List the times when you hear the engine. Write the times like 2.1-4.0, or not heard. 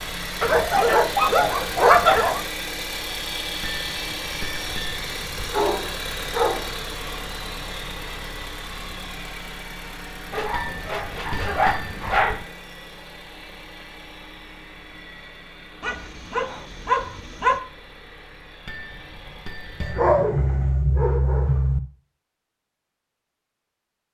0.0-20.8.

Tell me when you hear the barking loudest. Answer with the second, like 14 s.
2 s.